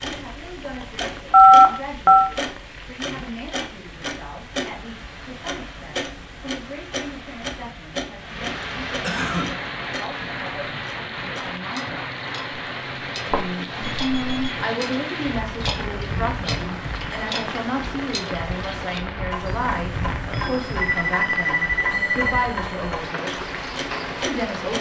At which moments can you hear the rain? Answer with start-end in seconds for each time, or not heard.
0.0-24.7.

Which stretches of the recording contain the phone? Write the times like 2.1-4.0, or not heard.
1.3-2.3, 13.3-14.6, 20.8-22.5.